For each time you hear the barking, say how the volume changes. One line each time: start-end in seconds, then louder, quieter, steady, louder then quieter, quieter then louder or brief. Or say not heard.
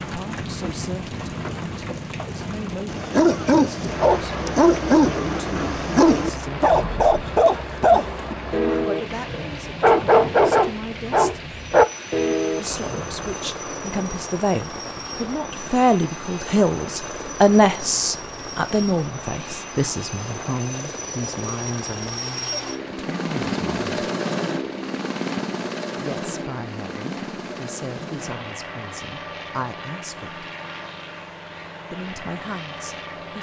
2.9-13.3 steady.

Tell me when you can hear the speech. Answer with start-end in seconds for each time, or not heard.
0.0-7.0, 7.9-11.7, 12.5-24.1, 26.0-30.4, 31.9-33.3.